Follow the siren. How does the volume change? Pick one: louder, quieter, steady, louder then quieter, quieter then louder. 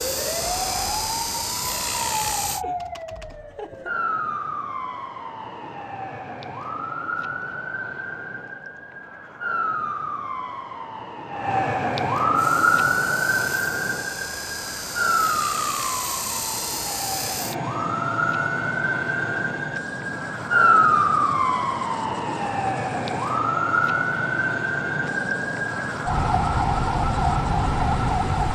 louder.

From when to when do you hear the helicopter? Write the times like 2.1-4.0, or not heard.
0.0-2.6, 12.3-28.4.